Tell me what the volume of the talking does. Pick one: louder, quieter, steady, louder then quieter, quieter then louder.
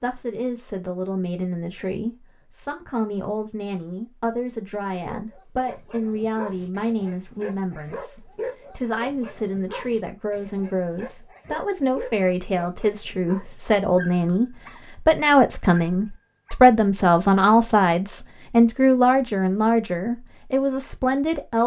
louder.